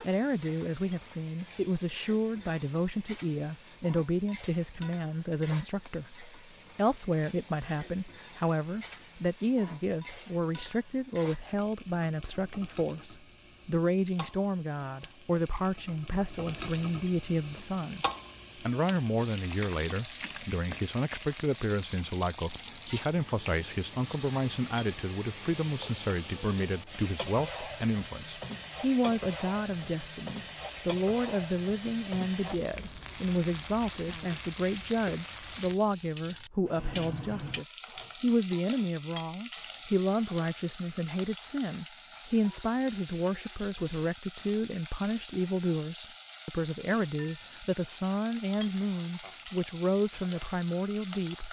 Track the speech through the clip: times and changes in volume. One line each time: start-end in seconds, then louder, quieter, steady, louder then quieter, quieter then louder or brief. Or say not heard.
0.0-51.4 steady.